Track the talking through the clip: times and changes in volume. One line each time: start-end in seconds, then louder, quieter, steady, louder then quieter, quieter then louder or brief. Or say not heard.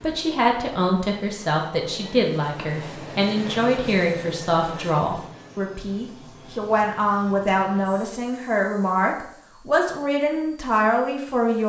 0.0-11.6 steady.